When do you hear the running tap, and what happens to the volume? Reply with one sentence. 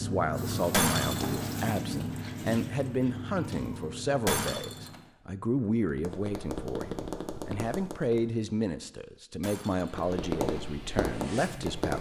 The running tap can be heard from 0.0 to 5.1 s, getting quieter; and briefly from 9.8 to 11.8 s.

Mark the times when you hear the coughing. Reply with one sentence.
You can't hear the coughing here.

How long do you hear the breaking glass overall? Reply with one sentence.
You can hear the breaking glass for 2 seconds altogether.